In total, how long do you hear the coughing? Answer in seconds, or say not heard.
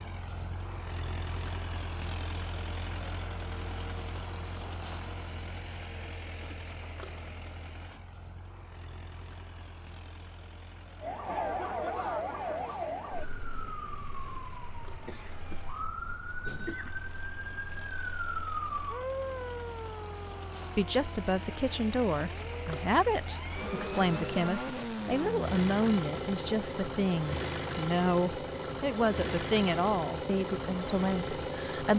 2 s.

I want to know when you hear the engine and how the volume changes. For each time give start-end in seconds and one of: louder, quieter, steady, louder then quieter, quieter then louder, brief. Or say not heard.
0.0-31.9 quieter then louder.